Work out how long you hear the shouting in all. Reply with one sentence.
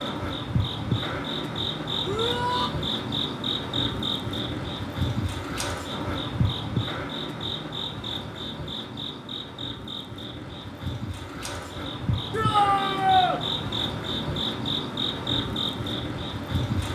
You can hear the shouting for 2 seconds altogether.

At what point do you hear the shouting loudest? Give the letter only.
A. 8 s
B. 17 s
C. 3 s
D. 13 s
D.